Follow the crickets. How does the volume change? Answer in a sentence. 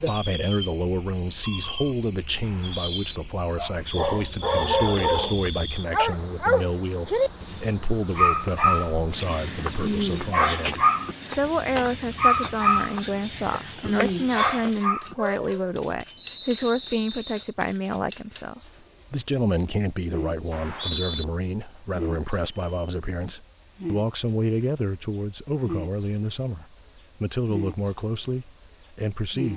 The volume of the crickets stays about the same.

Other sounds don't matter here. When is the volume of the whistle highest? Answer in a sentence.
The loudest moment of the whistle is at 21 seconds.